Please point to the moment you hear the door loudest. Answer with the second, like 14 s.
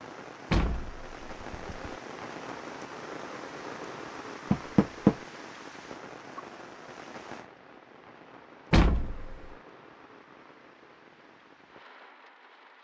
5 s.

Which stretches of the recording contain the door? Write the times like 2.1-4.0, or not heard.
0.5-1.9, 4.5-5.2, 8.7-9.5.